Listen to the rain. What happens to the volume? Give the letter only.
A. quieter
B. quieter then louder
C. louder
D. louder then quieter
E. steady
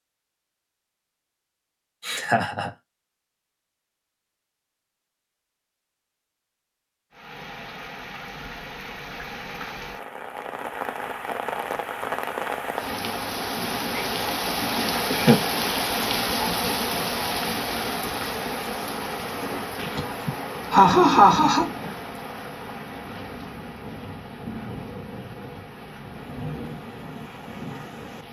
D.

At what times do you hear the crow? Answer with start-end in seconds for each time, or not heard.
not heard.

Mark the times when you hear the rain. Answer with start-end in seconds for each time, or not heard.
7.1-28.2.